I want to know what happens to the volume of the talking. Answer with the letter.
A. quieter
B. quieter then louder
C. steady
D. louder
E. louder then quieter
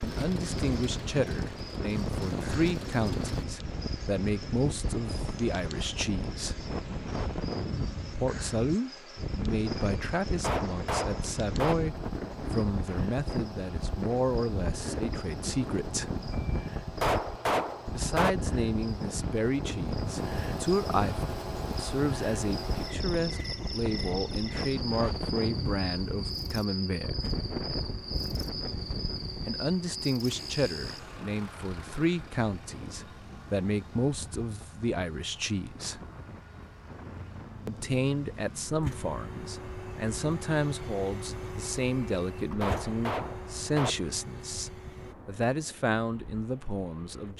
C.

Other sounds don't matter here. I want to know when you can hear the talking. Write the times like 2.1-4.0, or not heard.
0.0-6.6, 8.2-16.1, 17.9-27.2, 29.4-36.0, 37.6-47.3.